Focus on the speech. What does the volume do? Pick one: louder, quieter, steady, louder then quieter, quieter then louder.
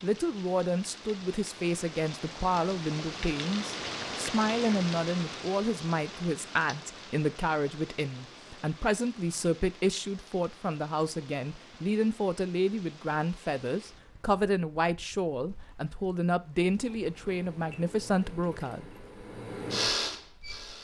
steady.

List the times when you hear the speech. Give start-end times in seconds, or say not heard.
0.0-18.9.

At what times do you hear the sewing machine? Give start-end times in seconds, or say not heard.
16.8-20.7.